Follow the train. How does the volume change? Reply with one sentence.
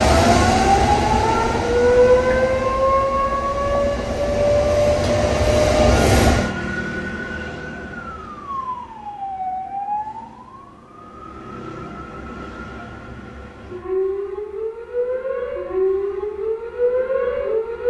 The loudness of the train goes down, then up.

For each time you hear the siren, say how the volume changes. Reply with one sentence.
You can hear the siren from 0.0 to 17.8 s, getting quieter then louder.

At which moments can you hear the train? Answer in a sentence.
The train can be heard from 0.0 to 6.5 s.